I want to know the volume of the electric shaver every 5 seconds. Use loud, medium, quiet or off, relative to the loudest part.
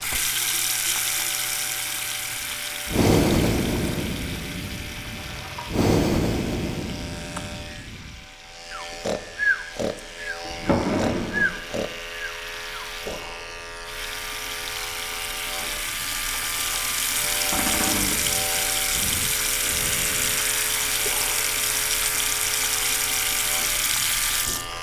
medium, medium, loud, loud, loud.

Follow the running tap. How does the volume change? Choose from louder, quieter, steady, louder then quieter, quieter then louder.
quieter then louder.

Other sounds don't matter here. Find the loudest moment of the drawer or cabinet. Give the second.
11 s.